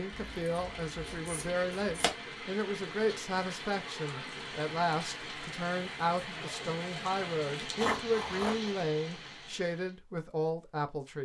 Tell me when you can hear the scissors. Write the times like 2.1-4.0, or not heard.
0.1-2.1, 7.8-8.7.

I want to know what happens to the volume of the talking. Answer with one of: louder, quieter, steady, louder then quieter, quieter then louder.
steady.